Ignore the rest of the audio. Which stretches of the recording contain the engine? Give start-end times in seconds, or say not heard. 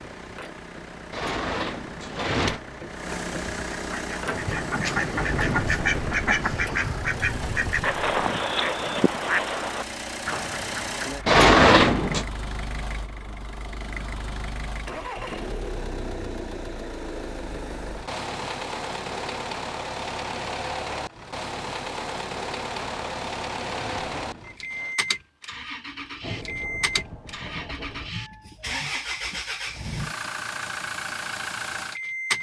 0.0-32.3.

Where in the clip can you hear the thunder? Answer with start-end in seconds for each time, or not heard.
4.3-8.2, 26.2-28.1.